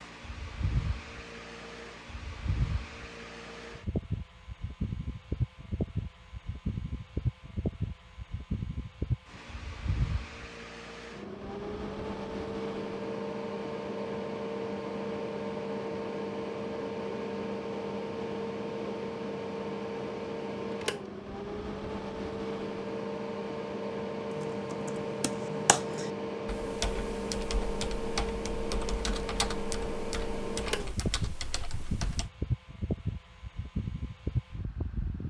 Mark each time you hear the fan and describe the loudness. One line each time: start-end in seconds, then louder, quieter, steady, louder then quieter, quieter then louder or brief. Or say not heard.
0.0-35.2 steady.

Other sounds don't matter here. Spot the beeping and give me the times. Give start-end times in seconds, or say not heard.
not heard.